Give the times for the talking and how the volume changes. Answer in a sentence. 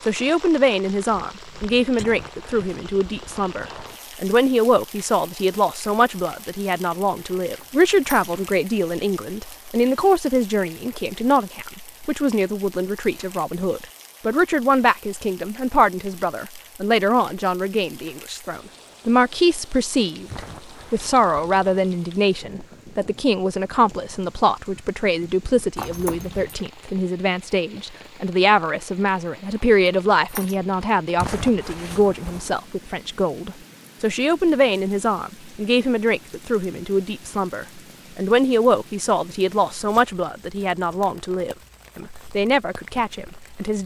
The talking can be heard from 0.1 to 43.8 s, at a steady volume.